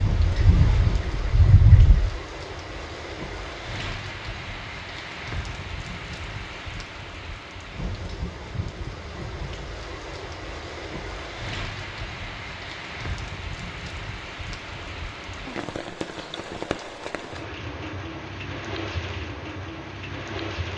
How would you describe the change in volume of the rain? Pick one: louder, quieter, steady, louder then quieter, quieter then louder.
steady.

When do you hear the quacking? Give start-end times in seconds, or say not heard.
0.0-2.1.